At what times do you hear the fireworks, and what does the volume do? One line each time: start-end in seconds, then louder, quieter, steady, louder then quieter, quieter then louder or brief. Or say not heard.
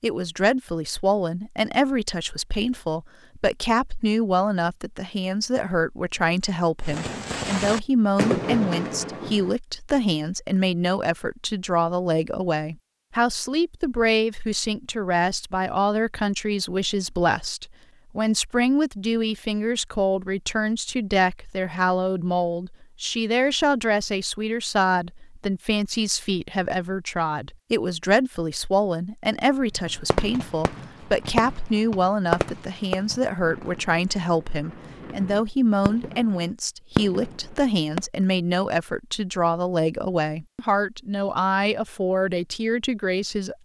6.8-9.6 brief
29.8-38.0 quieter then louder.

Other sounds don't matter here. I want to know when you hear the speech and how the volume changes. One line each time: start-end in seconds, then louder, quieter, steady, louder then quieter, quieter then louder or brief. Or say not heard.
0.0-43.6 steady.